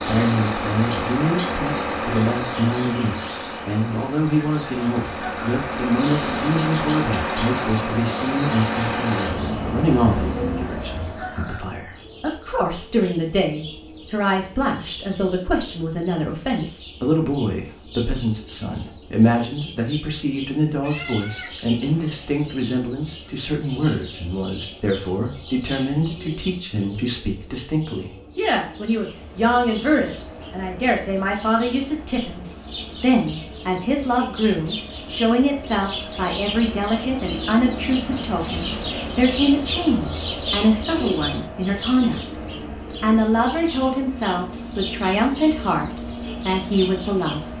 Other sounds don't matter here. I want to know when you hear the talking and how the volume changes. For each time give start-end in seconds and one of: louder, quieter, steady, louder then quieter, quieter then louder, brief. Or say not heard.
0.0-47.5 steady.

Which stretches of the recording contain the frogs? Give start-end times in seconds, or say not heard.
not heard.